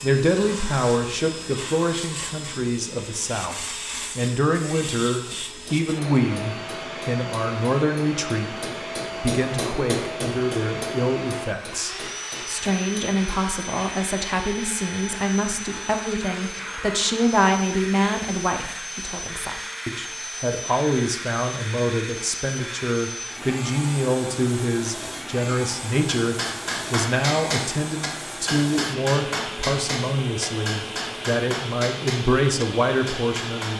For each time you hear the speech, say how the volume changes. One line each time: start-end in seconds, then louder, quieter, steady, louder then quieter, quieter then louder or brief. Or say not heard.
0.0-33.7 steady.